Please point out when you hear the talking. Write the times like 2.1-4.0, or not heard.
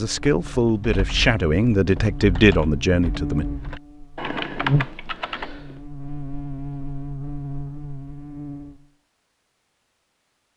0.0-3.5.